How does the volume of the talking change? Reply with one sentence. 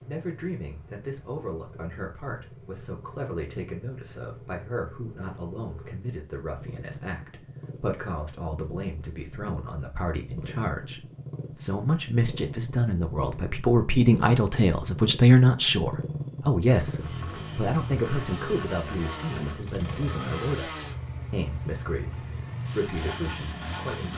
The volume of the talking goes up, then down.